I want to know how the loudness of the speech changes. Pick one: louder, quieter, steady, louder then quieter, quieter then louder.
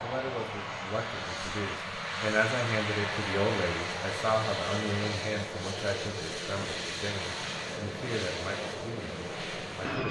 louder then quieter.